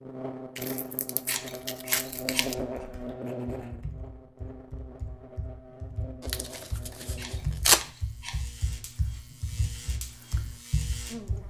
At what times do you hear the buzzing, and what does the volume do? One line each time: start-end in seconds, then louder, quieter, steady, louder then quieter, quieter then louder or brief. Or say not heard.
0.0-11.4 quieter.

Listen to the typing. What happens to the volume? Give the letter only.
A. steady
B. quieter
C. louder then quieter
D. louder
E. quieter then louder
D.